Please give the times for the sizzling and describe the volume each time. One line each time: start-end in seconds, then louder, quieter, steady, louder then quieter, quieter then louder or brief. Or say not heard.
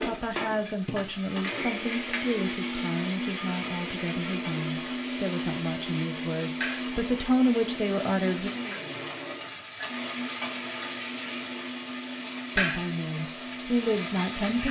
0.0-14.6 louder.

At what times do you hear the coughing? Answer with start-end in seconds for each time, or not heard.
not heard.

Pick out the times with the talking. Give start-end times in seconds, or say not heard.
0.0-8.5, 12.6-14.6.